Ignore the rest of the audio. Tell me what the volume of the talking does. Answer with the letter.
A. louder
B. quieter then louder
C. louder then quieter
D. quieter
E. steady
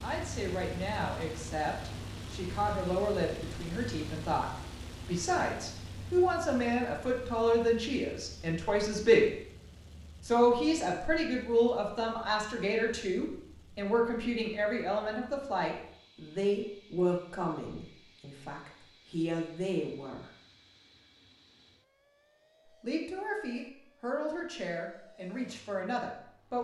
C.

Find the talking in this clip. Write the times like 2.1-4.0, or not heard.
0.0-9.3, 10.2-20.3, 22.8-26.5.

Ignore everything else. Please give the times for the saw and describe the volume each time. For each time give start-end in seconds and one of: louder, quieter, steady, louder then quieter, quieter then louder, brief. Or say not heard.
not heard.